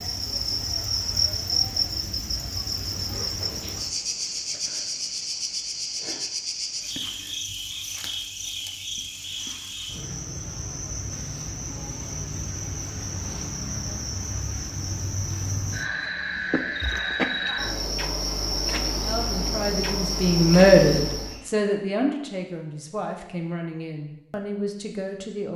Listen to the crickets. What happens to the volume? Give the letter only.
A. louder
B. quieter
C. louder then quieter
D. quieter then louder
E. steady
D.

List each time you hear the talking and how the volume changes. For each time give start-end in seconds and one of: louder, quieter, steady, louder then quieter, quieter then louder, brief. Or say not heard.
18.9-25.5 louder then quieter.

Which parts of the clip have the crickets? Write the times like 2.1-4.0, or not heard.
0.0-21.5.